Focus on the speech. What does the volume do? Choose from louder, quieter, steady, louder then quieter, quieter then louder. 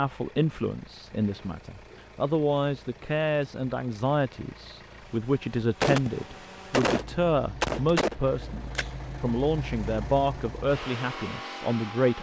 steady.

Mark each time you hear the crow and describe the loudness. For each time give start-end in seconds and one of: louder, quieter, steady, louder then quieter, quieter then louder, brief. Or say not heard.
not heard.